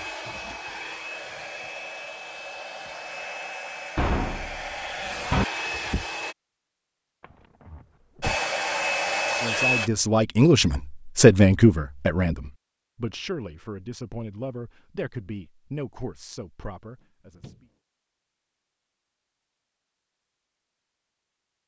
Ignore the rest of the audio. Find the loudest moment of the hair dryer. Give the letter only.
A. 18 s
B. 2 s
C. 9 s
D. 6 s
C.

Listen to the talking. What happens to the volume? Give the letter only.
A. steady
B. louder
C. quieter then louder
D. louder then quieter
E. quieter
E.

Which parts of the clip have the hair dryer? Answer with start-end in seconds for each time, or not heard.
0.0-6.3, 8.2-9.9.